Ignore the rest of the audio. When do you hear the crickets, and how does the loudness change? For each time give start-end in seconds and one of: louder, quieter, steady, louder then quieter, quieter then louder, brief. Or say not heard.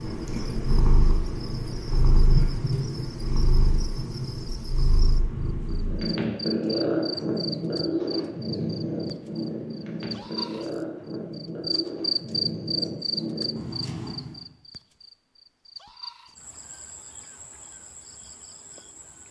0.0-19.2 louder then quieter.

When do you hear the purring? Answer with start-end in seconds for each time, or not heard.
0.0-14.4.